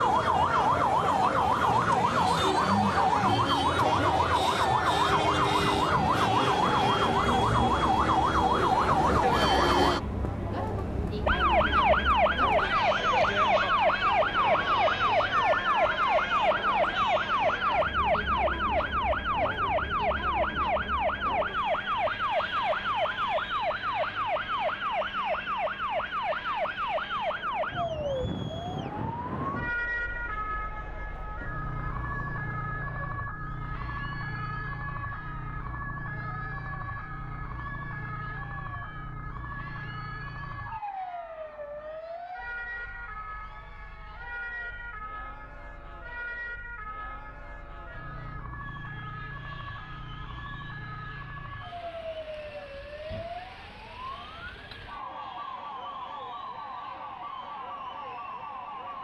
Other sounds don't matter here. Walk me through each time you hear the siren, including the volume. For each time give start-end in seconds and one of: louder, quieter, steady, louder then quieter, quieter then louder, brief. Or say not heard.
0.0-58.9 quieter.